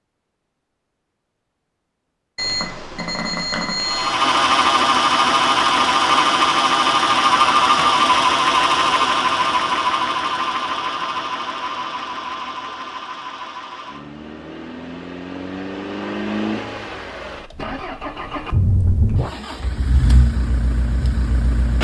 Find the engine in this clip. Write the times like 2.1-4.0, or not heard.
3.8-21.7.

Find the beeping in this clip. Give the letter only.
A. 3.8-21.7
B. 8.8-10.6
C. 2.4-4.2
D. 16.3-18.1
C.